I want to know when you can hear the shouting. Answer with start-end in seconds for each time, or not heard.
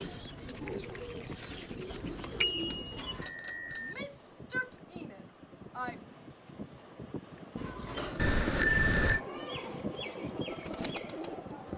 3.8-6.0.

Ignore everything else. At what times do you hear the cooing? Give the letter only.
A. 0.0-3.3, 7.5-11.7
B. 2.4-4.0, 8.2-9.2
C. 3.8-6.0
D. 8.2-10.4
A.